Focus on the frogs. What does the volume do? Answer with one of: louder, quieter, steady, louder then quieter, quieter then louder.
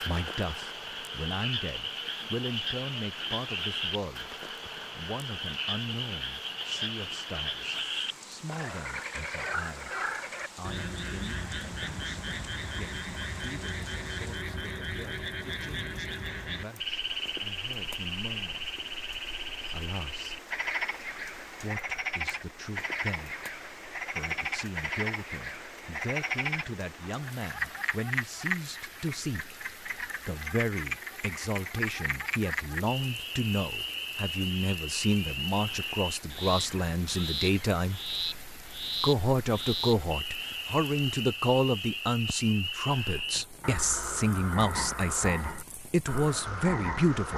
steady.